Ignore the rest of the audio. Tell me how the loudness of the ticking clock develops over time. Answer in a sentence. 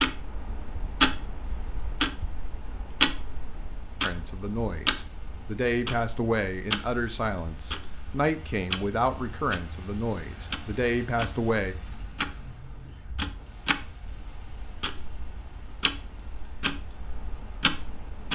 The loudness of the ticking clock goes down.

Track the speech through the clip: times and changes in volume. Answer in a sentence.
The speech can be heard from 4.0 to 11.8 s, at a steady volume.